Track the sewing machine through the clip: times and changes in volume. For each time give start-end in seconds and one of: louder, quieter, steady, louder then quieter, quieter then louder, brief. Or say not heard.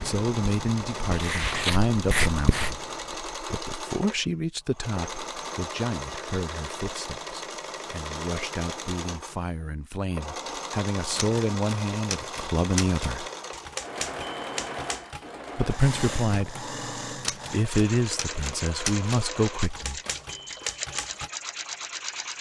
0.0-22.3 steady.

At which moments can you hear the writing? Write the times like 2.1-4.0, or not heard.
0.0-3.1.